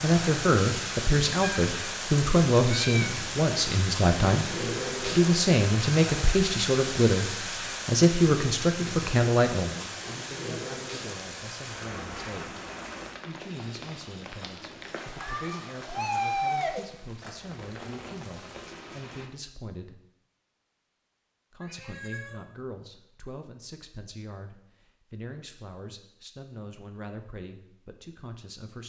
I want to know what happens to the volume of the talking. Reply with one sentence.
The volume of the talking goes down.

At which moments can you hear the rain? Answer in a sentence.
You can hear the rain from 0.0 to 19.3 s.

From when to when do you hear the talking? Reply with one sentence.
The talking can be heard from 0.0 to 12.6 s, from 13.2 to 20.0 s and from 21.5 to 28.8 s.